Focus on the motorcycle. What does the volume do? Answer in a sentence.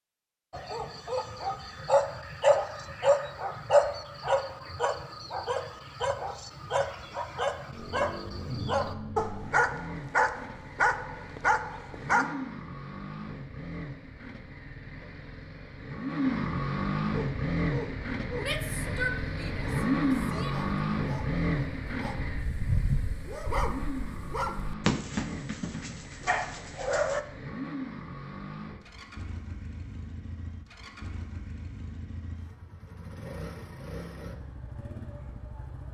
The volume of the motorcycle goes up, then down.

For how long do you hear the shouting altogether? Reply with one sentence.
You can hear the shouting for 2 seconds altogether.